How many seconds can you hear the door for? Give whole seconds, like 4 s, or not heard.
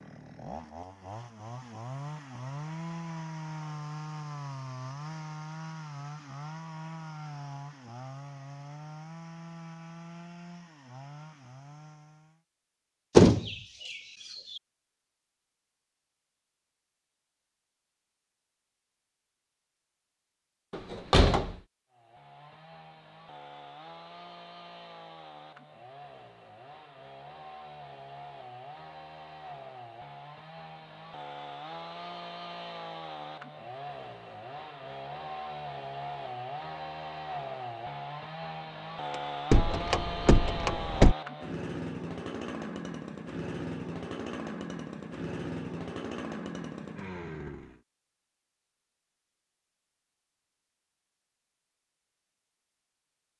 3 s.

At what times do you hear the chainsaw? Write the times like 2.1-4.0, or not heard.
0.0-12.4, 21.9-47.8.